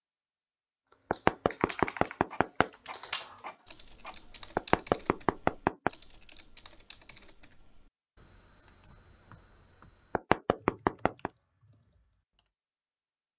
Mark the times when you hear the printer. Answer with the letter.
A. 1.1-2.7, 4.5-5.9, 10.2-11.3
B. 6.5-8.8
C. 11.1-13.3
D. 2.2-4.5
D.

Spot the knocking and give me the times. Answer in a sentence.
You can hear the knocking from 1.1 to 2.7 s, from 4.5 to 5.9 s and from 10.2 to 11.3 s.